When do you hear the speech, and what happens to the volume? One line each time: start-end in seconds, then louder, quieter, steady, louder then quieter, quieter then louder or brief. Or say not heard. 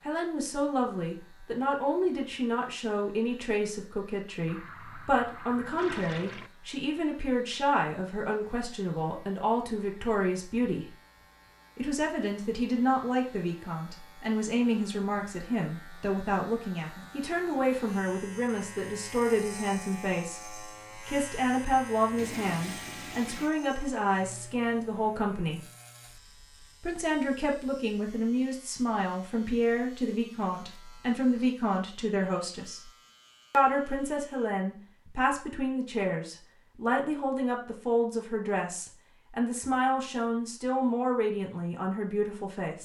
0.1-10.9 steady
11.8-25.6 steady
26.8-32.9 steady
33.5-42.8 steady.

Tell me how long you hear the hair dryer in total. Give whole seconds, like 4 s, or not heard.
not heard.